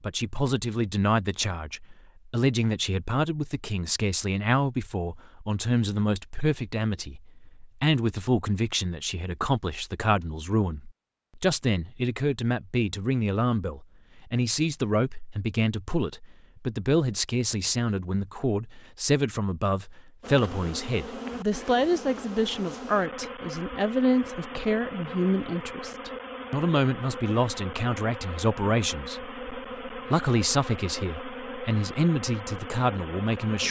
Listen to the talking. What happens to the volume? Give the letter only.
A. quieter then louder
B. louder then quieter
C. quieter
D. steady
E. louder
D.